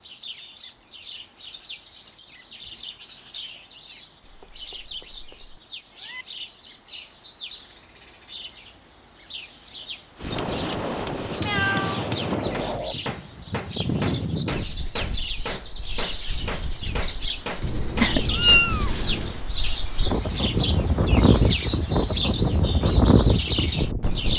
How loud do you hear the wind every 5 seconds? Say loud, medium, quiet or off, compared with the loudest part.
off, off, medium, quiet, loud.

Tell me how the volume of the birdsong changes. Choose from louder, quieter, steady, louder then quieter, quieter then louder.
louder.